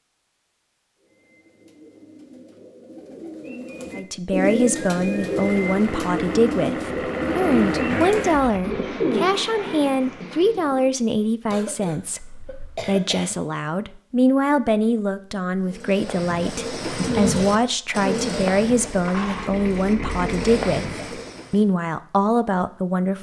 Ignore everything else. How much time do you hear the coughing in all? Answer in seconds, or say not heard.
2 s.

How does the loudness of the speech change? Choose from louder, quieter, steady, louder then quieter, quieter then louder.
steady.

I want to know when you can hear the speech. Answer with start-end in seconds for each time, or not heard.
4.0-23.1.